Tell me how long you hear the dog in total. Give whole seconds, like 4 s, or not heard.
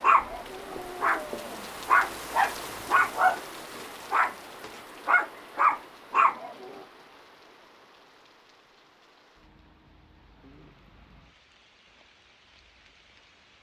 7 s.